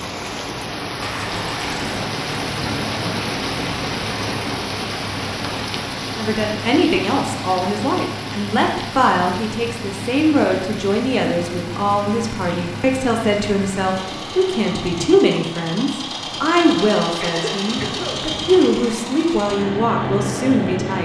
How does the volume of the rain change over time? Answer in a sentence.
The volume of the rain goes down.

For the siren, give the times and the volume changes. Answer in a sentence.
The siren can't be heard in this clip.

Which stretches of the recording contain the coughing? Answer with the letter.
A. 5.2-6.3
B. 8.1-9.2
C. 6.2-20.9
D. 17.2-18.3
D.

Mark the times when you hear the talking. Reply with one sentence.
You can hear the talking from 6.2 to 20.9 s.